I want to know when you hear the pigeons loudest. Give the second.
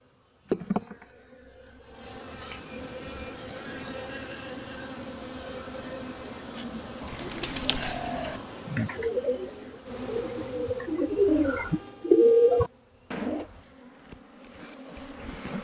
12 s.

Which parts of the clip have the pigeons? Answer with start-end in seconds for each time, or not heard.
7.0-13.4.